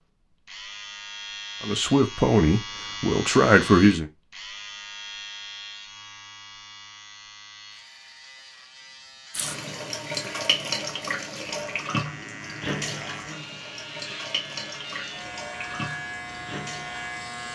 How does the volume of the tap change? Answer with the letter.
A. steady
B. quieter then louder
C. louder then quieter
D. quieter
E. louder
D.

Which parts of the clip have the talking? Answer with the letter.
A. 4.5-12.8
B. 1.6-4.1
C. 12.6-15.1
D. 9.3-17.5
B.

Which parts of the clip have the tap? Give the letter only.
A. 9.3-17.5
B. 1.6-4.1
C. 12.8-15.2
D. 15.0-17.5
A.